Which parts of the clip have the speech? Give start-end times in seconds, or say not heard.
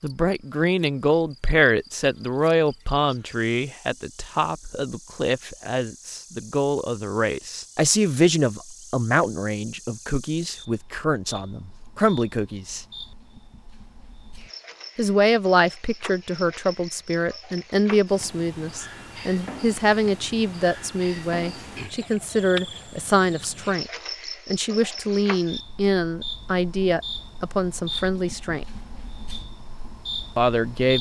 0.0-12.8, 14.9-28.6, 30.4-30.9.